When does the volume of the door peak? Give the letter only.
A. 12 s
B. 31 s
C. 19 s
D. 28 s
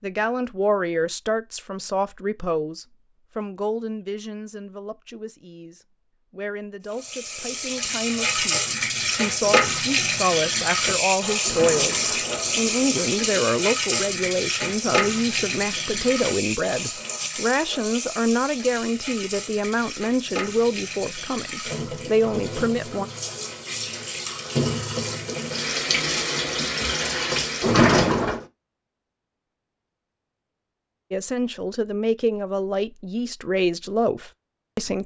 D.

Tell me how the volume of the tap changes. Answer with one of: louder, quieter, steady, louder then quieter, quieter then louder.
quieter then louder.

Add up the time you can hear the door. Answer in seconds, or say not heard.
3 s.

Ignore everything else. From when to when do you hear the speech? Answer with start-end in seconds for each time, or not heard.
0.0-23.1, 31.1-35.0.